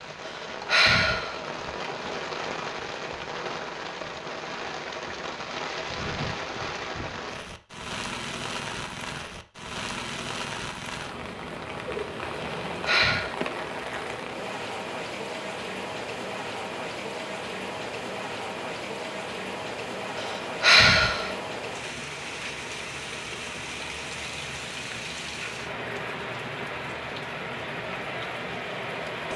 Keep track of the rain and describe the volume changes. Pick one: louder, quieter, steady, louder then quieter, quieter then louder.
steady.